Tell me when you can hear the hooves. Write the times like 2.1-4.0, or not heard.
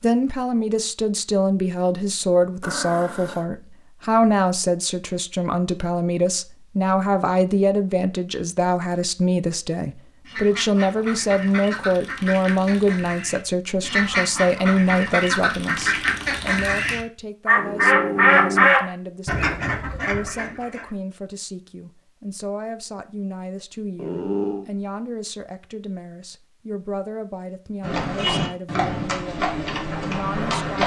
27.8-30.8.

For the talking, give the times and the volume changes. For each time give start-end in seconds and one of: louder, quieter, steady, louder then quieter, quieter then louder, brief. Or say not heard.
0.0-30.8 quieter.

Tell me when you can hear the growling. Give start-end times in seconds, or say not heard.
2.6-3.5, 17.6-18.7, 23.9-24.6.